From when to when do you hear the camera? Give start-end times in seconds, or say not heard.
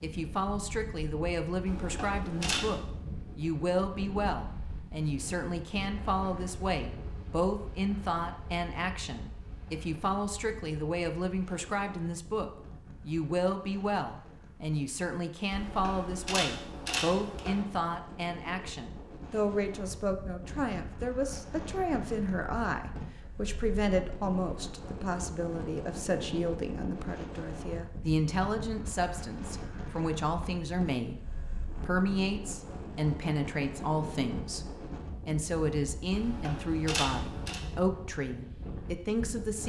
1.6-2.8, 15.5-17.6, 36.1-37.6.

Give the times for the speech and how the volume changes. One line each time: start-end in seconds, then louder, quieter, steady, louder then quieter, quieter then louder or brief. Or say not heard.
0.0-39.6 steady.